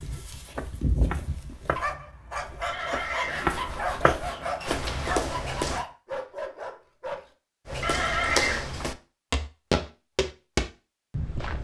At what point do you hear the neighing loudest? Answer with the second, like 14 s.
8 s.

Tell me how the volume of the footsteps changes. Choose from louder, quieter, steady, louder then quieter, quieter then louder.
louder.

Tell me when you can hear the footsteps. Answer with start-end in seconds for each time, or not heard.
0.0-5.8, 7.7-11.5.